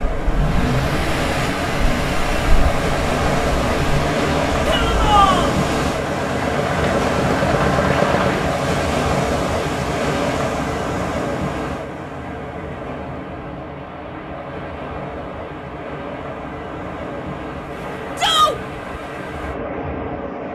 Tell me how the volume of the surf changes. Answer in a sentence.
The loudness of the surf goes down.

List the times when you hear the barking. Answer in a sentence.
You can't hear the barking here.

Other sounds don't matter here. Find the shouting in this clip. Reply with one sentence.
The shouting can be heard from 4.7 to 5.5 s and from 18.1 to 18.6 s.